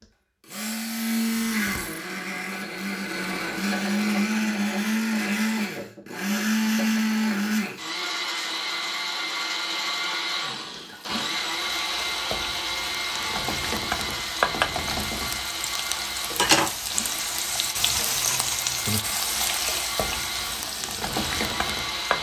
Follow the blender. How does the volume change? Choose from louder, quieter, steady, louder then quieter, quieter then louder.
quieter.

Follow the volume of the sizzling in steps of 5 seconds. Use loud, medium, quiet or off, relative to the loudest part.
off, off, loud, loud, loud.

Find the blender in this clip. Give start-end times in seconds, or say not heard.
0.0-22.1.